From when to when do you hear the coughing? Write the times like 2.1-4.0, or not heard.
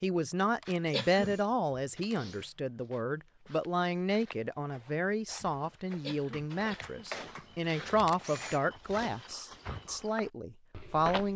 0.9-1.4, 6.0-7.1.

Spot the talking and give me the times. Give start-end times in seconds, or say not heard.
0.0-11.3.